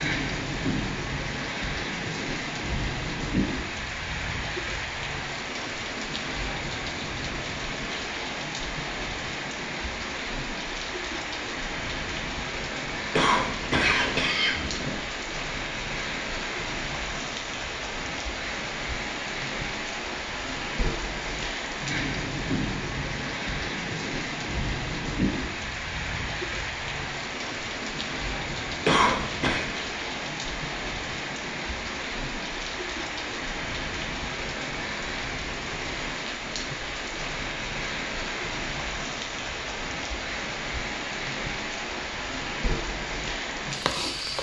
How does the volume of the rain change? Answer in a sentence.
The loudness of the rain stays about the same.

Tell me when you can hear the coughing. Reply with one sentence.
You can hear the coughing from 13.1 to 14.9 s and from 28.9 to 29.6 s.